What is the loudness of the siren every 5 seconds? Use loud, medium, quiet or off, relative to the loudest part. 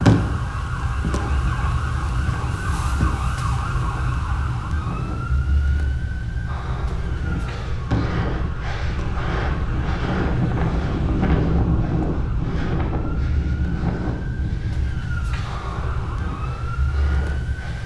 loud, medium, medium, medium.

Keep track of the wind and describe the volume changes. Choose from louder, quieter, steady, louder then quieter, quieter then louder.
louder then quieter.